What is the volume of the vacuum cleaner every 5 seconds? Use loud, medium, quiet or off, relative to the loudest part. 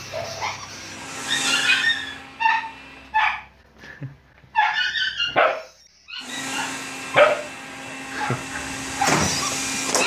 medium, loud.